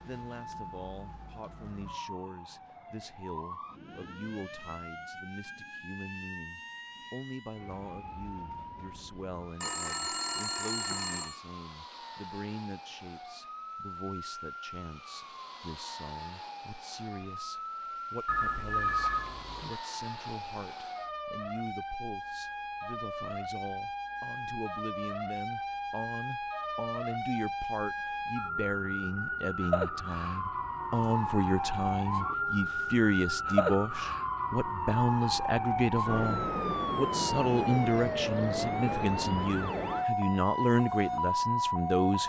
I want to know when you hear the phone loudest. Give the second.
19 s.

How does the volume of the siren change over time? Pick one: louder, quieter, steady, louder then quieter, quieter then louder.
louder.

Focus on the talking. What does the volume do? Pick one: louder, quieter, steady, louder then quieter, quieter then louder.
louder.